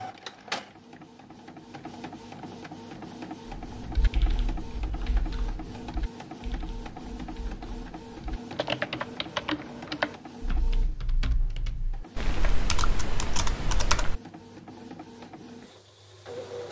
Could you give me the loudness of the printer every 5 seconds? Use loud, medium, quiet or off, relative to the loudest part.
loud, loud, medium, loud.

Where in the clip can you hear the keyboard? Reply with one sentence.
You can hear the keyboard from 3.6 to 14.2 s.